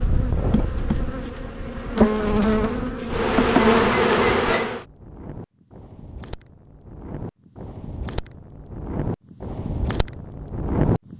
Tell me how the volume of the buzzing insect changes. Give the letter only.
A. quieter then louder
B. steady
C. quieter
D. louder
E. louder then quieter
D.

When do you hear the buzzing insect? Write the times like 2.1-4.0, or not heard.
0.0-4.8.